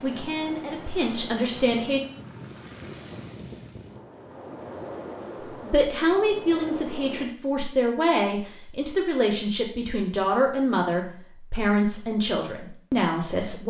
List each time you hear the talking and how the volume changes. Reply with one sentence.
You can hear the talking briefly from 0.0 to 2.0 s; and from 5.6 to 13.6 s, at a steady volume.